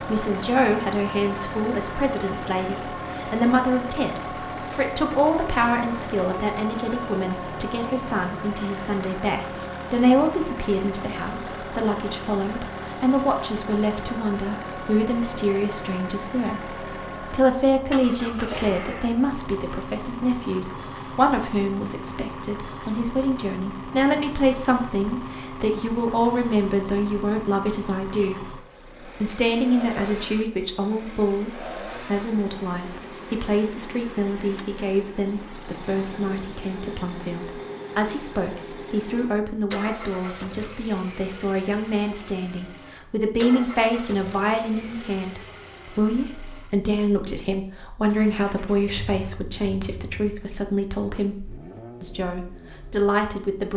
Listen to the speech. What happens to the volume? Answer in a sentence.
The volume of the speech stays about the same.